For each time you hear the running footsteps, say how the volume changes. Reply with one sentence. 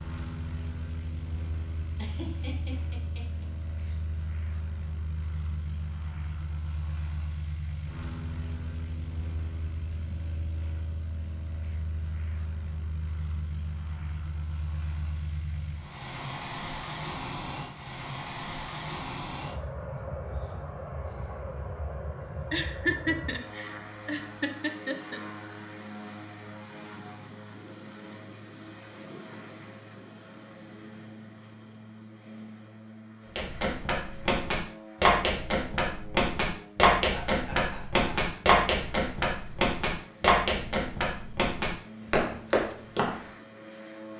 You can hear the running footsteps from 33.4 to 43.2 s, at a steady volume.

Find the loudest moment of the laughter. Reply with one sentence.
The loudest moment of the laughter is at 23 seconds.